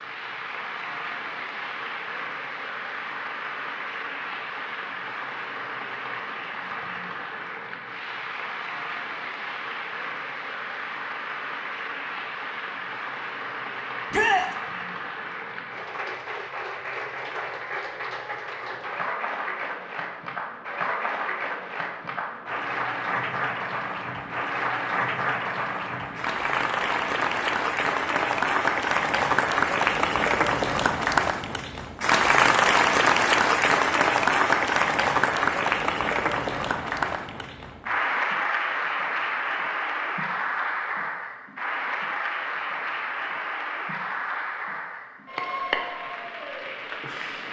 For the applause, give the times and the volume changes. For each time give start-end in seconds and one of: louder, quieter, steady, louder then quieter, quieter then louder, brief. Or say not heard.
0.0-47.4 louder then quieter.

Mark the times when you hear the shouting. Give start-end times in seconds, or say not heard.
14.1-14.5.